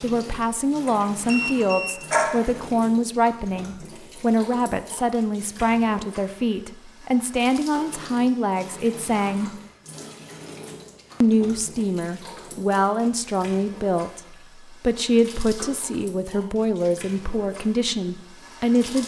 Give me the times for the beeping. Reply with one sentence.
The beeping can be heard from 0.8 to 2.6 s.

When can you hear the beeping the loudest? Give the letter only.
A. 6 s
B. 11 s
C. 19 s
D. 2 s
D.